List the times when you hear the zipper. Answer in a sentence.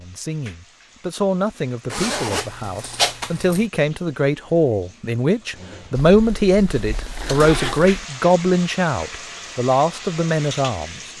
You can hear the zipper from 1.9 to 3.6 s and from 6.0 to 8.1 s.